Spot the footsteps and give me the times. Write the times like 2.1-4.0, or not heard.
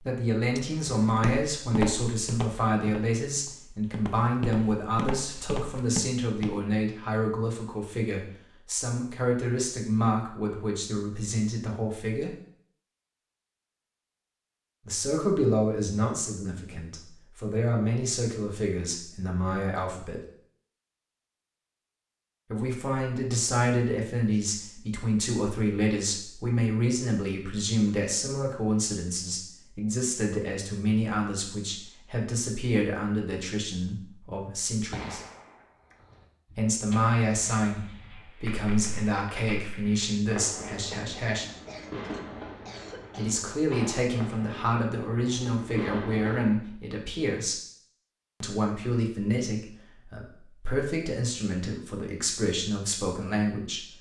1.1-6.6.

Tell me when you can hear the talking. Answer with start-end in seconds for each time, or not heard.
0.0-12.3, 14.8-20.2, 22.5-35.2, 36.5-41.5, 43.1-47.6, 48.4-53.9.